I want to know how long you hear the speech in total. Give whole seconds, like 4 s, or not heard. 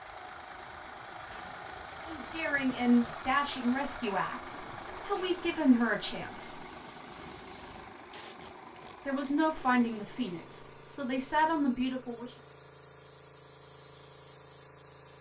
8 s.